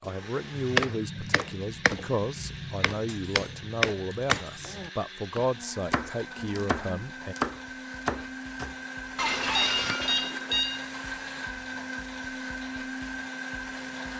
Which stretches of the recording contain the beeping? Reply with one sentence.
You can hear the beeping from 9.6 to 10.9 s.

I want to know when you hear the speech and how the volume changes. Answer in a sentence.
You can hear the speech from 0.0 to 7.3 s, at a steady volume.